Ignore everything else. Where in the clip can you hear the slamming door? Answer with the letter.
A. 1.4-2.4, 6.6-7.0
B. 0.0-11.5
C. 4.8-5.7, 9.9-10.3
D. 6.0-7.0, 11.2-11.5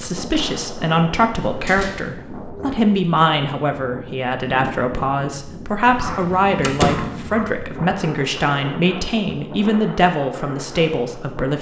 A.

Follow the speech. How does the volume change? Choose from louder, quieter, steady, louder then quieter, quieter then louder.
steady.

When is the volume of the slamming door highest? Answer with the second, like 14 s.
7 s.